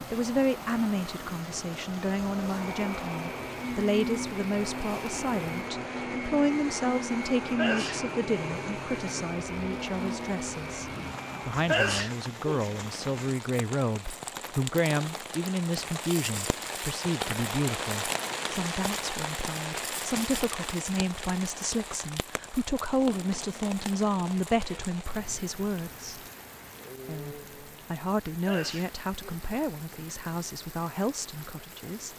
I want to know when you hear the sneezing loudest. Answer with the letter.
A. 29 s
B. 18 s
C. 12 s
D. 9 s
C.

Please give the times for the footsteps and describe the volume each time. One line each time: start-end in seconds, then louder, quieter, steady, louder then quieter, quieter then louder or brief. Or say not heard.
not heard.